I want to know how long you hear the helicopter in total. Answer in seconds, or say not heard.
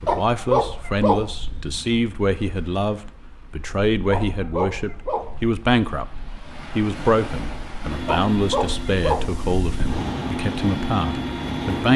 4 s.